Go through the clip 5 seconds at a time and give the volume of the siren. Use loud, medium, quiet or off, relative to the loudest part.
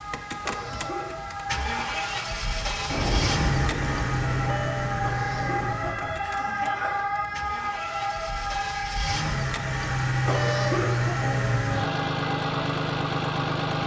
medium, loud, medium.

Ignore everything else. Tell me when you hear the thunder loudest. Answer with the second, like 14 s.
3 s.